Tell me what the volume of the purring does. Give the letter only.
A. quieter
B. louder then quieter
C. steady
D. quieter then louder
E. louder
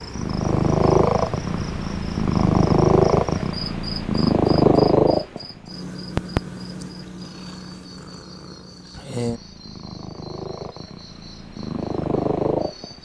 D.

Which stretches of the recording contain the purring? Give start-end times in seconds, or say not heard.
0.1-13.0.